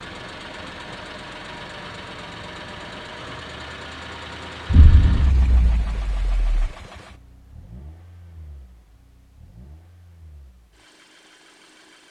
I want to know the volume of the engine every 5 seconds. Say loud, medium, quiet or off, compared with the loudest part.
loud, medium, quiet.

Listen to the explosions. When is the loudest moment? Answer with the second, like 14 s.
5 s.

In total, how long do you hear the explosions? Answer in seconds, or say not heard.
2 s.